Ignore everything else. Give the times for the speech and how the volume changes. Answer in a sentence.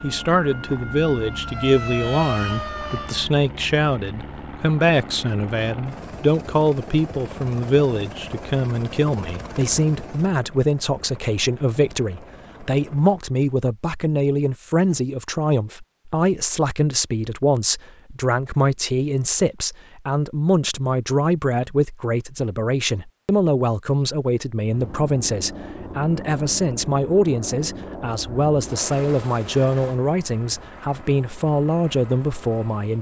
You can hear the speech from 0.0 to 32.9 s, at a steady volume.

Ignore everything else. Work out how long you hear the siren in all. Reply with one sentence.
You can hear the siren for 3 seconds altogether.